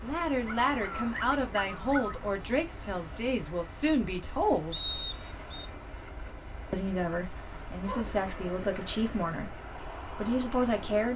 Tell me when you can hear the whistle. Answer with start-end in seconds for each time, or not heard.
4.7-5.7.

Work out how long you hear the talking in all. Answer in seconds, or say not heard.
9 s.